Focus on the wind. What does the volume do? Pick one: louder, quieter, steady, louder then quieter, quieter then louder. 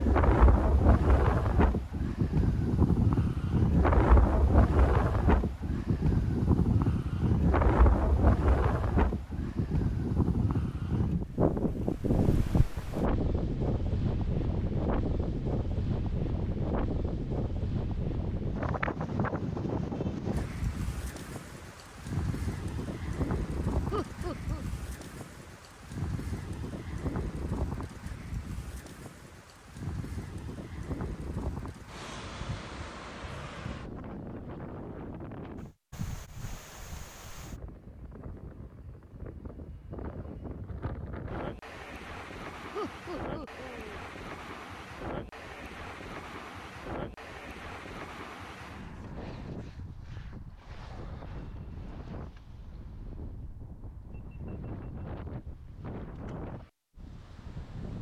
quieter.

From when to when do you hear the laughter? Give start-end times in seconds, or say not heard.
23.9-24.6, 42.7-44.0.